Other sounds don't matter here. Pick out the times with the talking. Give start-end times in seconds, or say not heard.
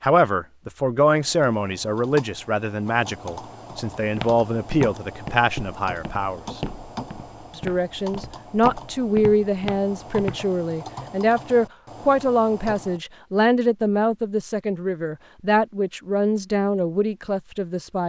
0.0-6.6, 7.5-18.0.